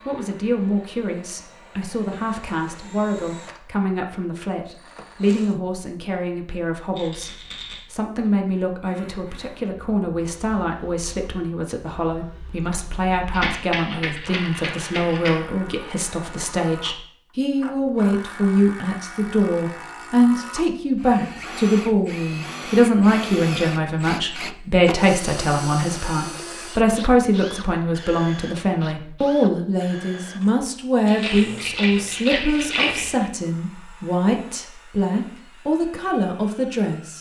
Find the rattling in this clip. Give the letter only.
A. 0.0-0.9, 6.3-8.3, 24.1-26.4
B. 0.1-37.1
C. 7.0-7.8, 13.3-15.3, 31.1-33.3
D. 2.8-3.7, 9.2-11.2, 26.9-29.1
C.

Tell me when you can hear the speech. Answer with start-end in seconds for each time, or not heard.
0.1-37.1.